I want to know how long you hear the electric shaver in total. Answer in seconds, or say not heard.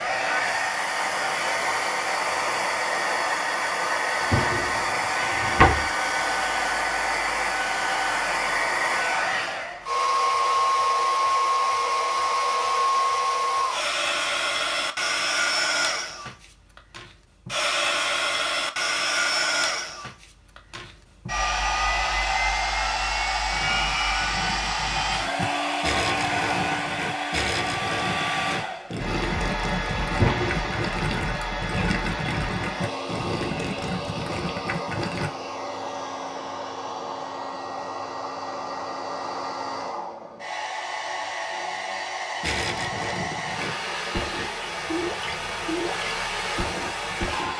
not heard.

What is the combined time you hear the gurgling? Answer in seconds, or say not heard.
17 s.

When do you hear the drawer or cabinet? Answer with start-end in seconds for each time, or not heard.
4.2-5.8, 30.1-30.8.